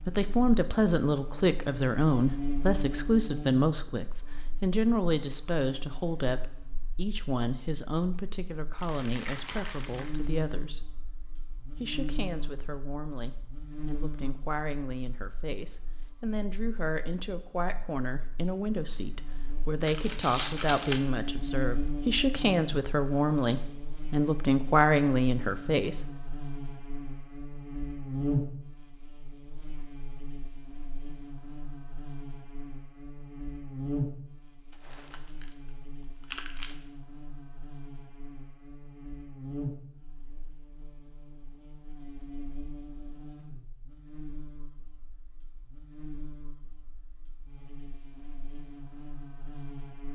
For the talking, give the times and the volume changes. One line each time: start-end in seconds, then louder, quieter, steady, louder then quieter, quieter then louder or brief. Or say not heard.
0.1-10.9 quieter
11.7-26.1 louder.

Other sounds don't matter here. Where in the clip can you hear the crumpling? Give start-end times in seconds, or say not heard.
8.8-10.2, 19.9-21.0, 34.7-36.8.